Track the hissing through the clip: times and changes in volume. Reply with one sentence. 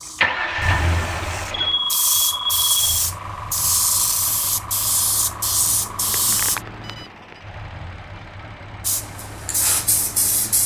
You can hear the hissing from 0.0 to 6.6 s, getting louder; and briefly from 8.8 to 10.6 s.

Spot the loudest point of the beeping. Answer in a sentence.
The loudest moment of the beeping is at 2 seconds.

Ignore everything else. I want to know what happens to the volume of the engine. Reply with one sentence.
The loudness of the engine goes down.